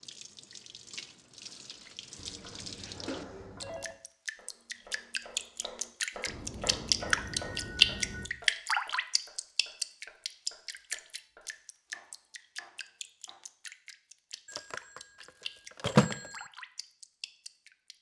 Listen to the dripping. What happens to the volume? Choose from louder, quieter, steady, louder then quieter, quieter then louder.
louder then quieter.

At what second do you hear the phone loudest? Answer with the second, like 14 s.
16 s.